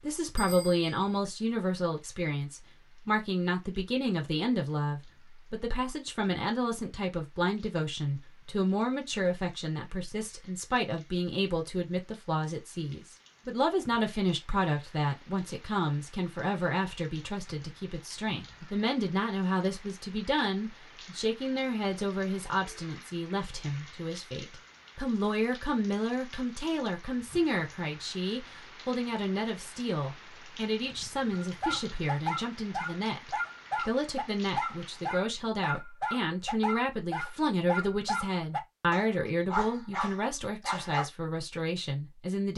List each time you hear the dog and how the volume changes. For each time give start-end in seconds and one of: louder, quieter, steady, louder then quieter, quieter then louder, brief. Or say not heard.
31.3-41.1 steady.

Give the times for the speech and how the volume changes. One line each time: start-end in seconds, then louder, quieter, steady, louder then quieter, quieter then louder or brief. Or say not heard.
0.0-42.5 steady.